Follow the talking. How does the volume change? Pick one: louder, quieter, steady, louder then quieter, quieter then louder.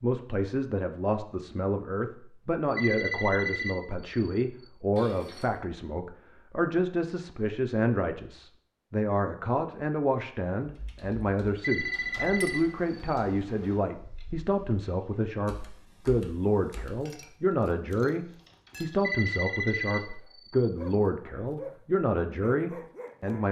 steady.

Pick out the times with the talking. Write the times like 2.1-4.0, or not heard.
0.0-23.4.